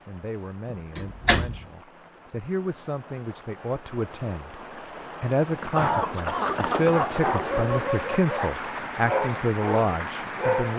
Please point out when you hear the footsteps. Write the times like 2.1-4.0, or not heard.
not heard.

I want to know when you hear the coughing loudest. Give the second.
6 s.